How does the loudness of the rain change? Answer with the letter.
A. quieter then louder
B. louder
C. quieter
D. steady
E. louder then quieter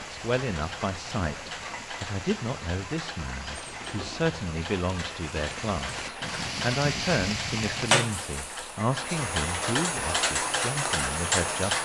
B.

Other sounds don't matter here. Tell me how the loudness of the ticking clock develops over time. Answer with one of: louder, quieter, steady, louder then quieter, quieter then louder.
louder.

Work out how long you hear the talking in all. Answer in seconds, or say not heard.
12 s.